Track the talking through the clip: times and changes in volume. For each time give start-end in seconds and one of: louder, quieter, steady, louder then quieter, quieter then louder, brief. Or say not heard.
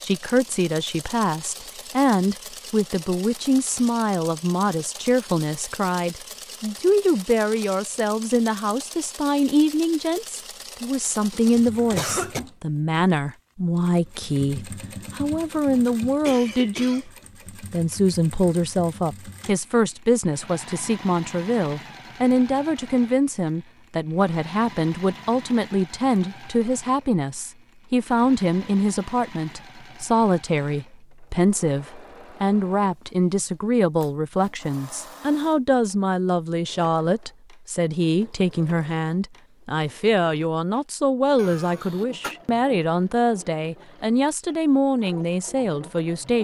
0.0-46.4 steady.